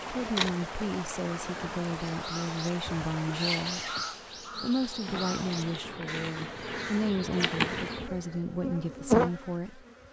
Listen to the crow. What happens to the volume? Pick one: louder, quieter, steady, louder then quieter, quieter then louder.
quieter.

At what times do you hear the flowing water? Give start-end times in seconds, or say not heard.
0.0-6.0.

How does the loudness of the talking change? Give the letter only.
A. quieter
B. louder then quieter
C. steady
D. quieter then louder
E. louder
C.